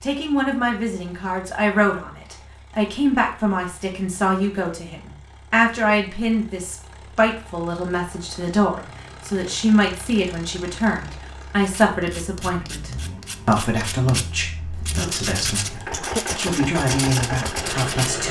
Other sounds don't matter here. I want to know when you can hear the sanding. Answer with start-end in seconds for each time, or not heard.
11.6-18.2.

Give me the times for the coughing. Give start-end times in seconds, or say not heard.
16.0-16.6.